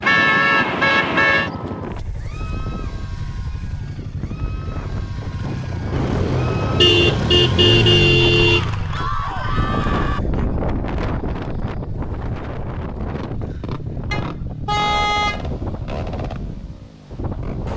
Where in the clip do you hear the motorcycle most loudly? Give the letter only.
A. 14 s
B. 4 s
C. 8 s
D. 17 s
C.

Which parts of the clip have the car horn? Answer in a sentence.
The car horn can be heard from 0.0 to 1.5 s, from 5.9 to 8.6 s and from 14.1 to 15.8 s.